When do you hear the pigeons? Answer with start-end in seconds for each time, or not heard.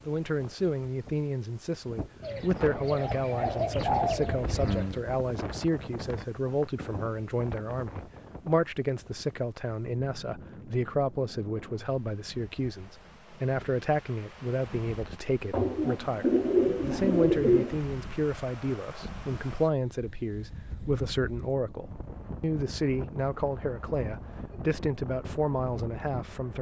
2.2-5.0, 15.5-17.8.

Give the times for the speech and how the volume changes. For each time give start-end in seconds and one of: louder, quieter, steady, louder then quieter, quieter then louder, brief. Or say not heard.
0.1-26.5 steady.